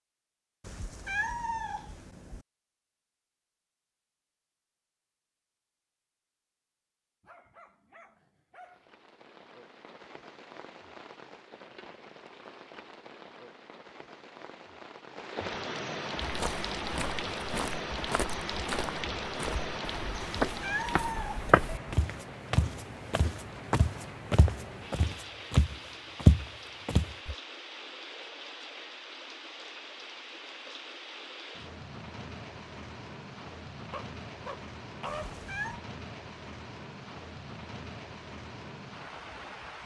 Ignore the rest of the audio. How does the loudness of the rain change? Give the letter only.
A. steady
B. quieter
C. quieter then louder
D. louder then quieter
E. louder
D.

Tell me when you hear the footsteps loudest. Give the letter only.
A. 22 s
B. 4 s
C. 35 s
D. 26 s
D.